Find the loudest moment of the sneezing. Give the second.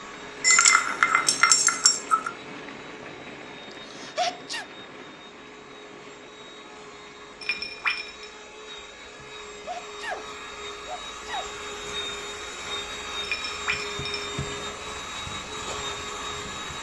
4 s.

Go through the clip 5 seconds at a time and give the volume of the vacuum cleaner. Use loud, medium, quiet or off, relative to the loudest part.
medium, medium, loud, loud.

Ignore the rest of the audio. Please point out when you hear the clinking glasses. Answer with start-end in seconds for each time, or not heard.
0.4-2.3, 7.4-8.3, 13.2-14.9.